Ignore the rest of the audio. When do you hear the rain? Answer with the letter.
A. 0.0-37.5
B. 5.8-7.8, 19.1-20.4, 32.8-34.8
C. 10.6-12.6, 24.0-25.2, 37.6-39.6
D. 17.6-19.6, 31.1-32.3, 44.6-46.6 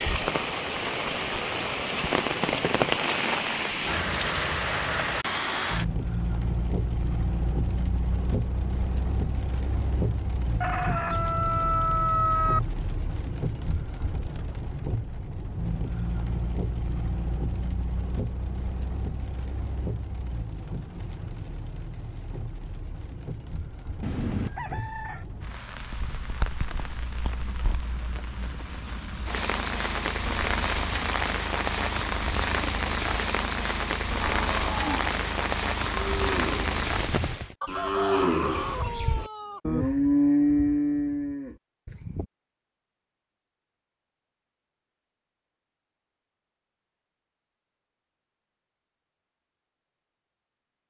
A.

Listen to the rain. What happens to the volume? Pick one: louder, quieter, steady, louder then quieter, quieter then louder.
quieter then louder.